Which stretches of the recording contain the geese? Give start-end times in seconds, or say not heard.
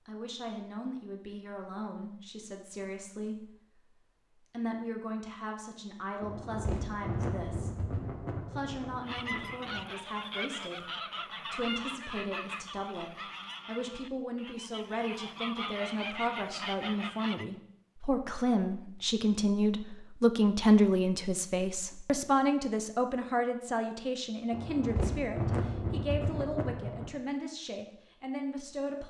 9.1-17.4.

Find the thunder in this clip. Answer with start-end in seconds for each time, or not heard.
6.2-9.8, 24.5-27.1.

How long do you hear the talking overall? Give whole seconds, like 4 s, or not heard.
29 s.